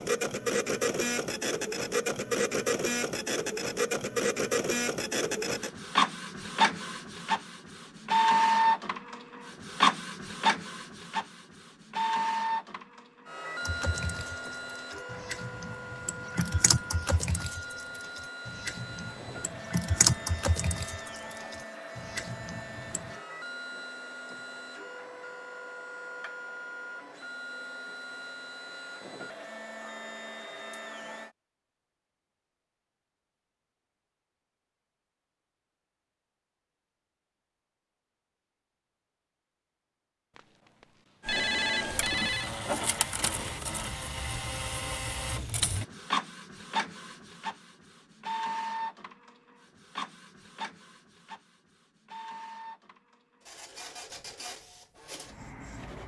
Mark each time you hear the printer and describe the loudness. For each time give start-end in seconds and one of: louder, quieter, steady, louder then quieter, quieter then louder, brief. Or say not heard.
0.0-31.4 quieter
41.2-56.0 quieter.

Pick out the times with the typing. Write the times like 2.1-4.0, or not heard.
13.7-23.1.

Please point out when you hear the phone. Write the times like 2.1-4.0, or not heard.
40.4-42.5.